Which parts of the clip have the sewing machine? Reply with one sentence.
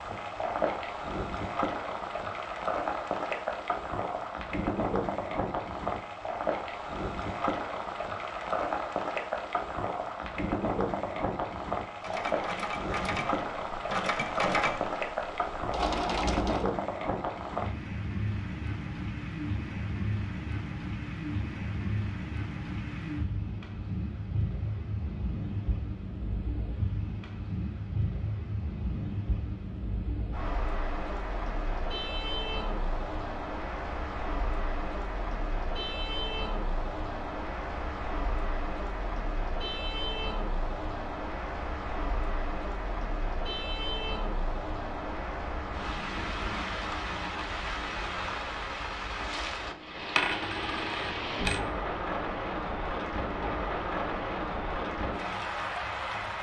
The sewing machine can be heard from 12.0 to 16.7 s.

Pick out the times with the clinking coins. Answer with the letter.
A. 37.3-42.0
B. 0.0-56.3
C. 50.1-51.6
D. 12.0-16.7
C.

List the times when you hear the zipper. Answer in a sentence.
The zipper can't be heard in this clip.